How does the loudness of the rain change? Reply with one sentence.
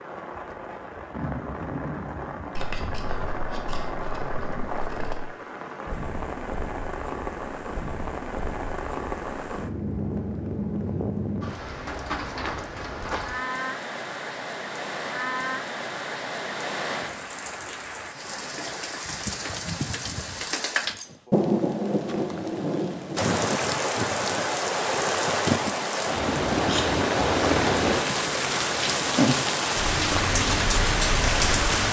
The volume of the rain goes up.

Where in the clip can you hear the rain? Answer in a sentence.
The rain can be heard from 0.0 to 31.8 s.